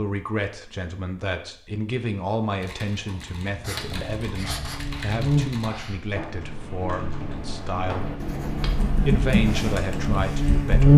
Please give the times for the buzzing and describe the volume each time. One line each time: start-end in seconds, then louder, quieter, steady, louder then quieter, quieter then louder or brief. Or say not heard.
3.9-10.9 quieter then louder.